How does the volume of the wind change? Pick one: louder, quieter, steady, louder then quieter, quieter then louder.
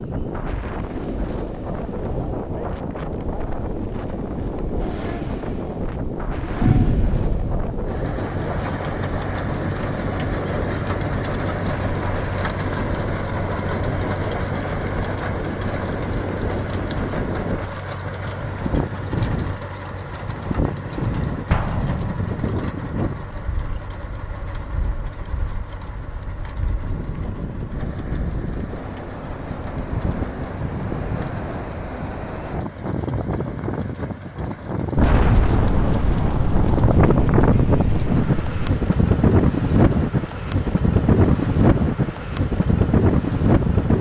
louder.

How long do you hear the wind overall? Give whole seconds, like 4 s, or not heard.
44 s.